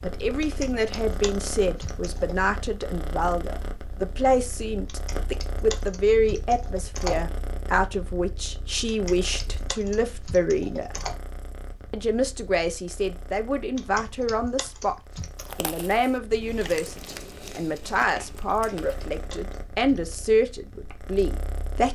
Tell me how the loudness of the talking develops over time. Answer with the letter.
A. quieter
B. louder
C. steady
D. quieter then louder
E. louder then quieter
C.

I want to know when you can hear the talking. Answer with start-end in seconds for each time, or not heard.
0.0-10.9, 11.9-14.9, 15.6-21.9.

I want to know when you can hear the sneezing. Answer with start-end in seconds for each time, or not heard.
not heard.